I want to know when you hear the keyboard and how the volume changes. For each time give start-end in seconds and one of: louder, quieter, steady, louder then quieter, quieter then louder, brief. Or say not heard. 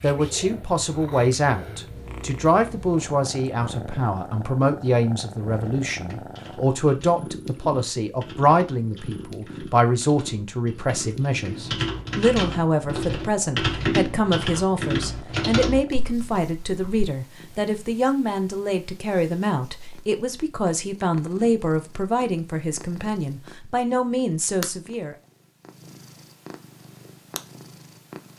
5.6-17.1 louder.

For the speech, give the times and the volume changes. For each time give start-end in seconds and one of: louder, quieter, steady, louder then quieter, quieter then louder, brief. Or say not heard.
0.0-25.1 steady.